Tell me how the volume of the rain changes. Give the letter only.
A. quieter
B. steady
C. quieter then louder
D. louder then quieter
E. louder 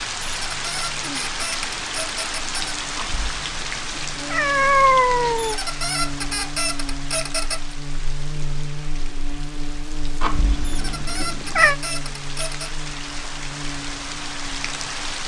C.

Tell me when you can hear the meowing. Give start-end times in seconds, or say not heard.
3.0-5.6, 10.2-11.8.